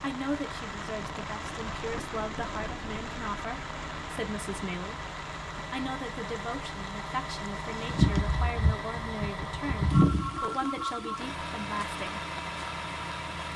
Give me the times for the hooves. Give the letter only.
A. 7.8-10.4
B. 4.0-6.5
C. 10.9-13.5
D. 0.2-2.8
A.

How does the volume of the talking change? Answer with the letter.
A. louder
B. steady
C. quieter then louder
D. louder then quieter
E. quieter
B.